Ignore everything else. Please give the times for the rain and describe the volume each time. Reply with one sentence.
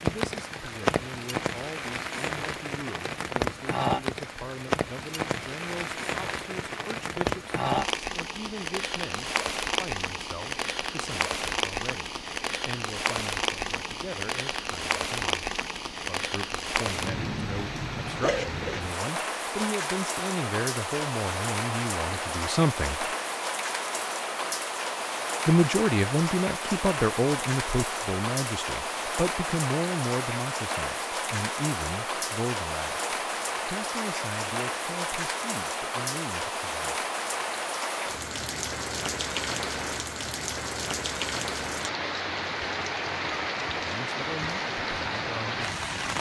You can hear the rain from 0.0 to 46.1 s, at a steady volume.